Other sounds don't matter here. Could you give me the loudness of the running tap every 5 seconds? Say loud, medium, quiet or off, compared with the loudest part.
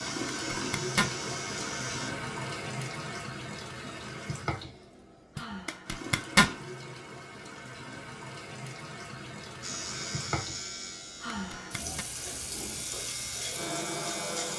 loud, medium, loud.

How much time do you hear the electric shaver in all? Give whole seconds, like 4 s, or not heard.
7 s.